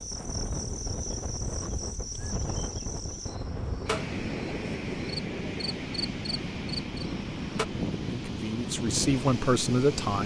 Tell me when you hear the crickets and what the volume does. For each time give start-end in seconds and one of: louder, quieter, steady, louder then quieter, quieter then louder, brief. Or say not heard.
0.0-7.7 steady.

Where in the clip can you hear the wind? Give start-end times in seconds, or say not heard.
0.0-10.2.